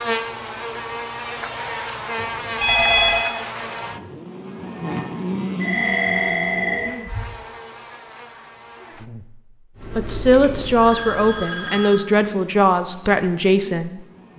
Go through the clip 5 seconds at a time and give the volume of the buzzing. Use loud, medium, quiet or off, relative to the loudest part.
loud, loud, quiet.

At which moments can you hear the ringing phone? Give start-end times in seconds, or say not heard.
2.1-3.2, 5.6-7.3, 10.7-12.0.